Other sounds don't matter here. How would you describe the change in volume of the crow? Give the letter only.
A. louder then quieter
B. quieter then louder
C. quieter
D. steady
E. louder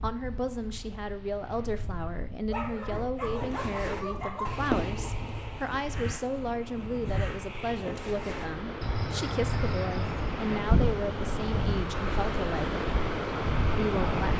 B.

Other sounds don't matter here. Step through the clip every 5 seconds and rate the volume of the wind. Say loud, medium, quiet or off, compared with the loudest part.
quiet, medium, loud.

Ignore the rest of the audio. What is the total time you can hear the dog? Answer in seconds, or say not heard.
2 s.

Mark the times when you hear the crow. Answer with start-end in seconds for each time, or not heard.
3.2-10.4.